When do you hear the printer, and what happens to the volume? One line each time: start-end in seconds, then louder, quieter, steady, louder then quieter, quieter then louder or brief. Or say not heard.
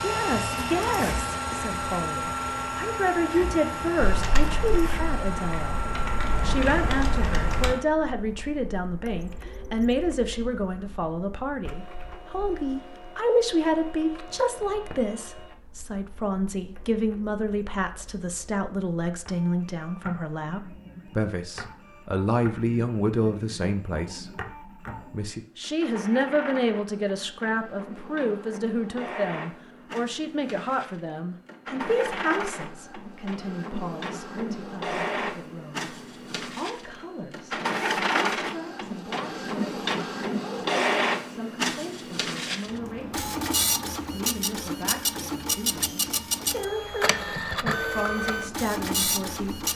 0.0-49.7 quieter then louder.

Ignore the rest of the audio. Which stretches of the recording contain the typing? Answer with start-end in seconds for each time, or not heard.
4.0-7.8.